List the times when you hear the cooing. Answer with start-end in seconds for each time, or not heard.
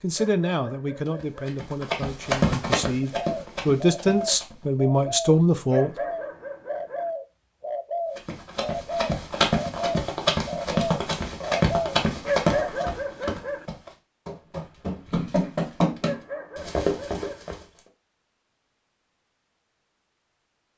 3.0-12.8.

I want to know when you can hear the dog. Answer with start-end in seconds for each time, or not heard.
0.1-1.4, 5.7-7.1, 12.2-13.7, 16.0-17.4.